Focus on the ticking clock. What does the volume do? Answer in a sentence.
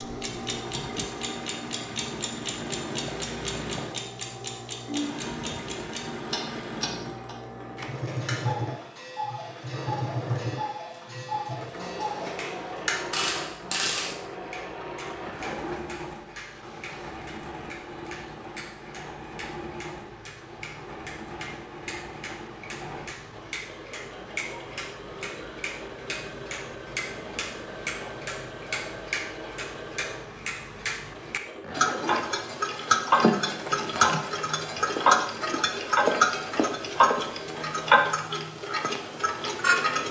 The loudness of the ticking clock goes down, then up.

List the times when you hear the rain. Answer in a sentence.
You can't hear the rain here.